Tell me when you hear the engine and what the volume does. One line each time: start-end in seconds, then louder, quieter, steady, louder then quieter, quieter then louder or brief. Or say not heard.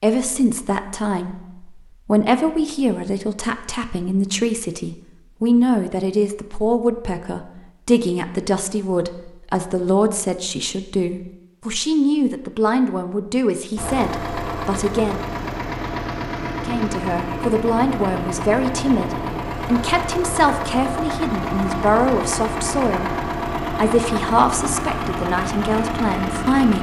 13.8-26.7 steady.